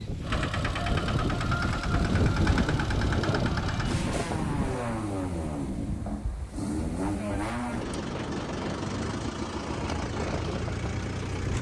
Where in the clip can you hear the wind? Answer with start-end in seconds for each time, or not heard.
0.0-11.5.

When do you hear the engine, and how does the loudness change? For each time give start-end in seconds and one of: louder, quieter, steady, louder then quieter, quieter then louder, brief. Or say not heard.
0.0-11.5 steady.